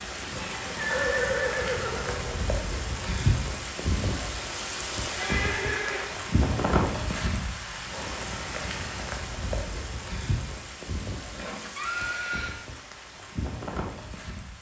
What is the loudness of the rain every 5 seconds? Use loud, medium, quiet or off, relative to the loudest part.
loud, loud, medium.